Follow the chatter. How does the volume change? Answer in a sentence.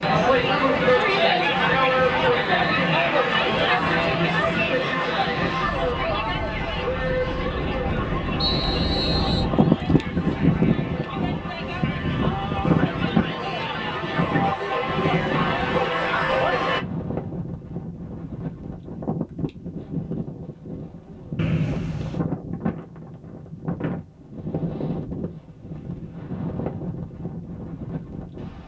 The volume of the chatter goes down, then up.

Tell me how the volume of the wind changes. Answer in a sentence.
The loudness of the wind goes up, then down.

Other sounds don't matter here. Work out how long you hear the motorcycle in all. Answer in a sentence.
The motorcycle can't be heard in this clip.